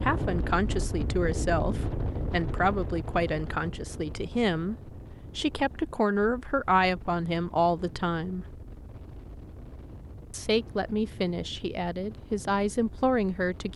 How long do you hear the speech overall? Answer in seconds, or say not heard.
11 s.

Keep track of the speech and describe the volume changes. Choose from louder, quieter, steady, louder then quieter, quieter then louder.
steady.